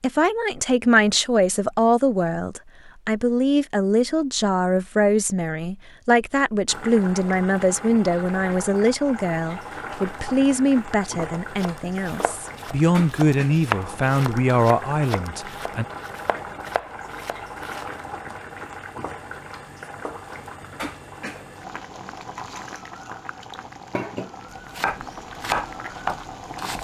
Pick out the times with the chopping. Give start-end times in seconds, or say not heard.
11.4-17.9, 24.7-26.7.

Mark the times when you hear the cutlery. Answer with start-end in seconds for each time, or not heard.
not heard.